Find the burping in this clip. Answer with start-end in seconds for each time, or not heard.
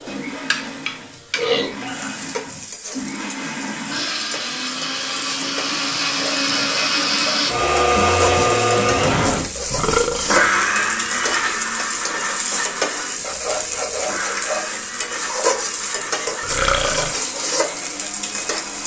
1.4-2.6, 9.7-10.4, 16.4-17.1.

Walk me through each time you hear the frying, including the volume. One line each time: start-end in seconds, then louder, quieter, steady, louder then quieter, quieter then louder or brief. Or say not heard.
0.0-18.8 louder.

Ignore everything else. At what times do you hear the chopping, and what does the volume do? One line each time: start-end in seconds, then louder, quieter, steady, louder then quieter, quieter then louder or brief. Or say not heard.
not heard.